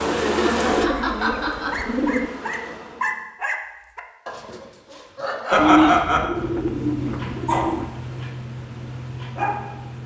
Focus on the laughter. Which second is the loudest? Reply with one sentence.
The loudest moment of the laughter is at 6 seconds.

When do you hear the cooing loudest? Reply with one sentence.
The loudest moment of the cooing is at 6 seconds.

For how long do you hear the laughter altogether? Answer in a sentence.
You can hear the laughter for 2 seconds altogether.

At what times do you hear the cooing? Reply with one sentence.
You can hear the cooing from 0.6 to 2.3 s and from 5.5 to 7.8 s.